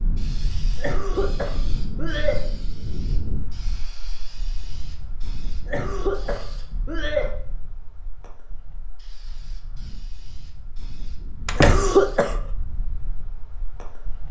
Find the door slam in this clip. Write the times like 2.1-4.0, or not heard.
11.4-11.9.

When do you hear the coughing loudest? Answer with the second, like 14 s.
12 s.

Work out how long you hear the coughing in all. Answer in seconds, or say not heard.
4 s.